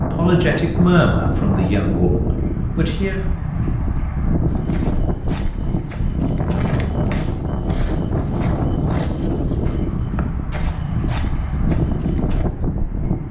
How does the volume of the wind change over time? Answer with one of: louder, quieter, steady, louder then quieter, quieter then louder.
steady.